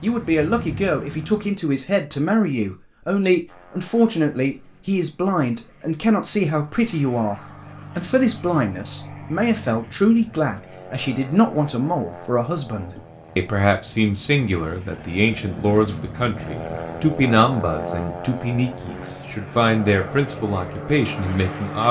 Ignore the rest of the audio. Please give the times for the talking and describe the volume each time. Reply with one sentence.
You can hear the talking from 0.0 to 21.8 s, at a steady volume.